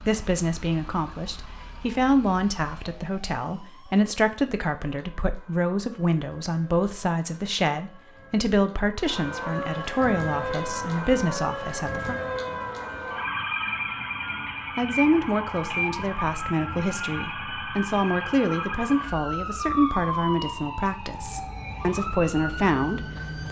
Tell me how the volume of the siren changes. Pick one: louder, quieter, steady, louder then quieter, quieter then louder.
louder.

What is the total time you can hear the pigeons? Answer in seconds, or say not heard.
not heard.